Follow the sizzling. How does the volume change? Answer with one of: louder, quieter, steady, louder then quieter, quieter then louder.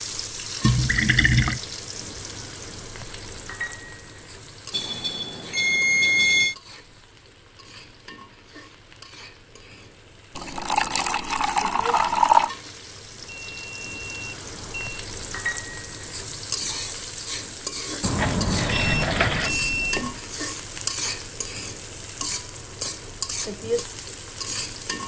quieter then louder.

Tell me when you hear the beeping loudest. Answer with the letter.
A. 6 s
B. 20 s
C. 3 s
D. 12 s
A.